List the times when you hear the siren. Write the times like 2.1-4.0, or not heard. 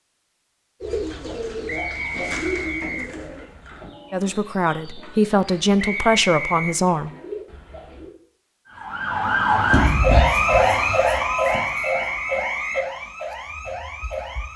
8.7-14.5.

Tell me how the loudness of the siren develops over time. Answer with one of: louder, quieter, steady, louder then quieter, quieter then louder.
quieter.